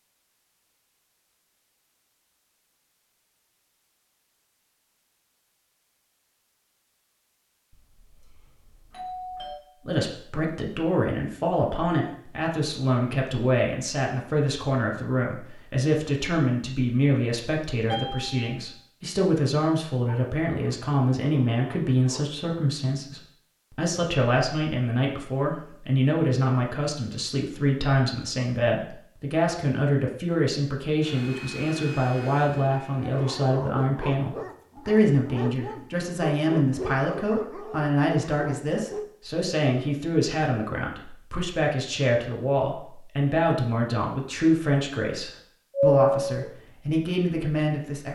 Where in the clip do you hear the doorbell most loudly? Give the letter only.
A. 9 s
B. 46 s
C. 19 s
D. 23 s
B.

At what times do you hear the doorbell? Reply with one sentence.
You can hear the doorbell from 7.9 to 9.6 s, from 17.9 to 18.6 s and from 45.7 to 46.5 s.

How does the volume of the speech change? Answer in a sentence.
The volume of the speech stays about the same.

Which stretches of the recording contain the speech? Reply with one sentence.
You can hear the speech from 9.8 to 48.1 s.